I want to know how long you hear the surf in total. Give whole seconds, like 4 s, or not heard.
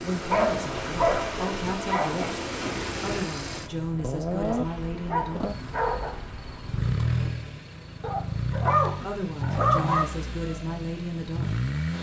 7 s.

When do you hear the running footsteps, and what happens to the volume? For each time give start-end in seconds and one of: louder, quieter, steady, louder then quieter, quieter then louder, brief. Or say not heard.
not heard.